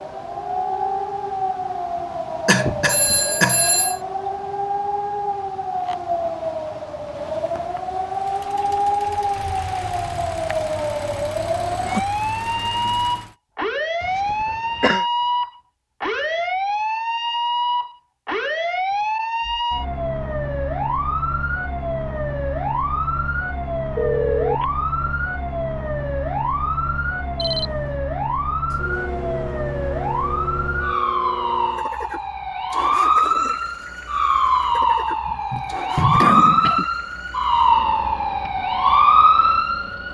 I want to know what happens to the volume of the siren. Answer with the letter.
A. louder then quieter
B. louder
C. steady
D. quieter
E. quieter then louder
B.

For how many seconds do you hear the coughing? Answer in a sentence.
You can hear the coughing for 4 seconds altogether.